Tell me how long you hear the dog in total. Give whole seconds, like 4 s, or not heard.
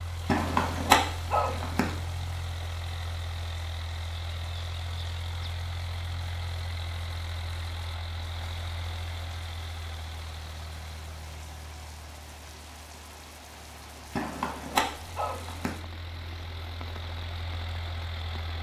3 s.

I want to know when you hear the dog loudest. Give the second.
1 s.